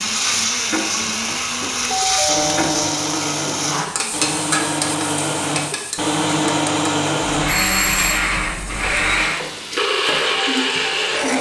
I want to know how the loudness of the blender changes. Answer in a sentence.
The loudness of the blender goes up.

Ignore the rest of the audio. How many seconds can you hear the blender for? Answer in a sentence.
You can hear the blender for 11 seconds altogether.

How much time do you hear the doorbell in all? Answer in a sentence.
You can hear the doorbell for 2 seconds altogether.